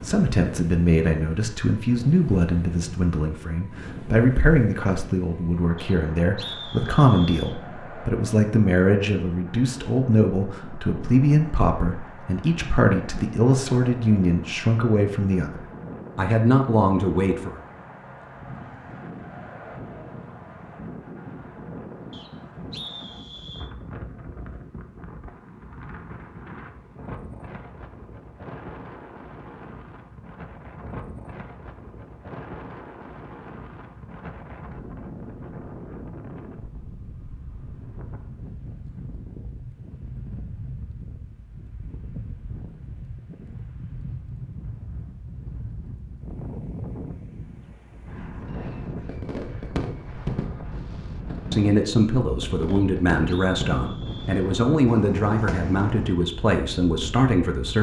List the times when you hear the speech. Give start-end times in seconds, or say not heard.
0.0-17.6, 51.5-57.7.